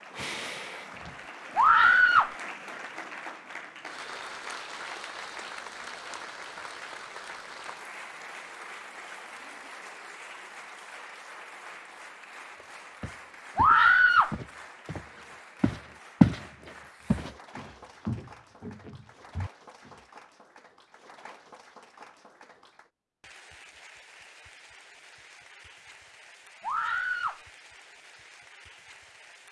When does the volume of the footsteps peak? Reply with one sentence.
The volume of the footsteps peaks at 16 seconds.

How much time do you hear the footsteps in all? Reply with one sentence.
You can hear the footsteps for 7 seconds altogether.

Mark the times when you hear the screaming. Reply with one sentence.
You can hear the screaming from 1.6 to 2.4 s, from 13.6 to 14.3 s and from 26.6 to 27.4 s.